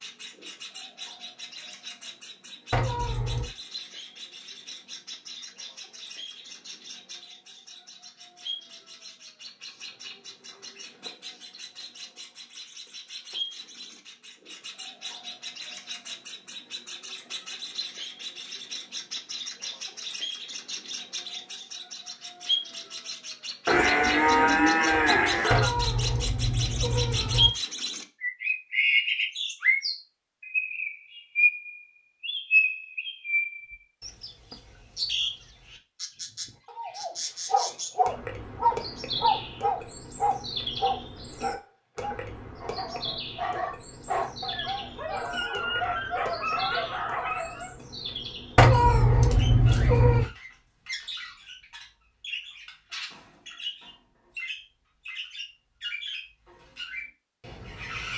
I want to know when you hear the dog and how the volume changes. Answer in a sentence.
The dog can be heard from 36.6 to 47.8 s, getting quieter then louder.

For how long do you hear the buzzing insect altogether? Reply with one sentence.
The buzzing insect can't be heard in this clip.